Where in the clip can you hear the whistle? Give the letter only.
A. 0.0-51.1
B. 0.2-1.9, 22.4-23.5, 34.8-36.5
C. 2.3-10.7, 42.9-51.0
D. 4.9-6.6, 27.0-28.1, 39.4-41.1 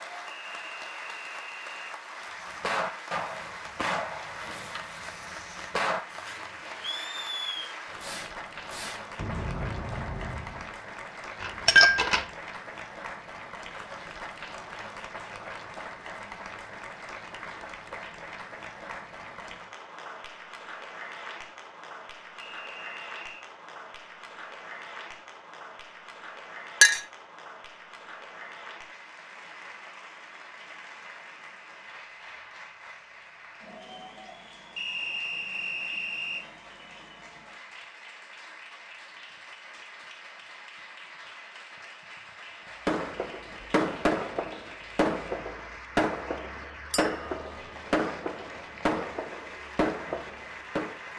B.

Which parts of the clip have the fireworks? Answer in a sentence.
The fireworks can be heard from 2.3 to 10.7 s and from 42.9 to 51.0 s.